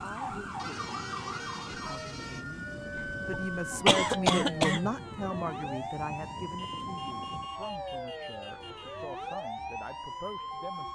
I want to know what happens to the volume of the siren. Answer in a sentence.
The volume of the siren stays about the same.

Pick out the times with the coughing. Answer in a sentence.
You can hear the coughing from 3.0 to 4.9 s.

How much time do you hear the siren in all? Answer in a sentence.
The siren can be heard for 11 seconds in total.